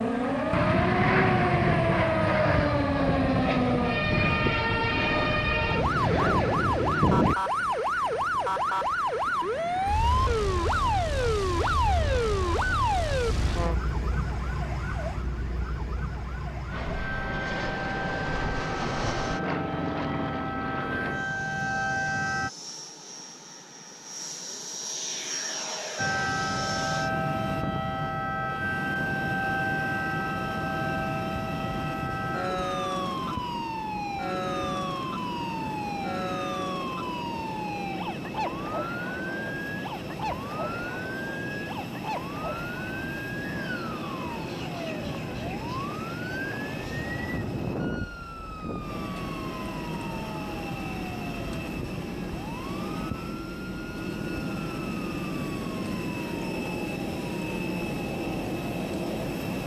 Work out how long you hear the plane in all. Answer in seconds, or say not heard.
57 s.